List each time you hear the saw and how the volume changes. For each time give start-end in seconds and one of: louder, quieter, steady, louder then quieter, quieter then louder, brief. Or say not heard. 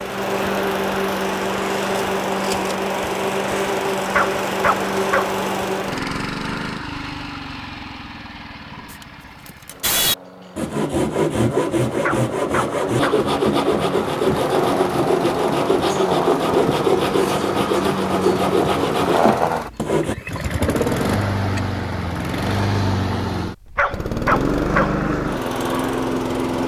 8.9-20.1 steady.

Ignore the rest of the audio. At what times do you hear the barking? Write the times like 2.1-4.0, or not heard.
4.1-5.3, 12.0-13.2, 23.8-25.1.